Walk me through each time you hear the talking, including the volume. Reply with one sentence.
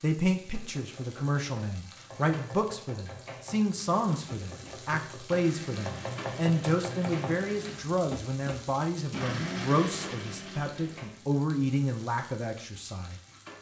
You can hear the talking from 0.0 to 13.2 s, at a steady volume.